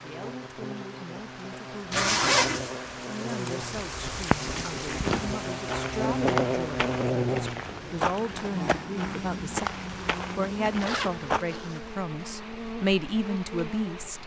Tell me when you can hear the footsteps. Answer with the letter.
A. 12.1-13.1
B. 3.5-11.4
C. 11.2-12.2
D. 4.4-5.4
B.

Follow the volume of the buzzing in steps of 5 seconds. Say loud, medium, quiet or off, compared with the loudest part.
medium, loud, medium.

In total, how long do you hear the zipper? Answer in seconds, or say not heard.
2 s.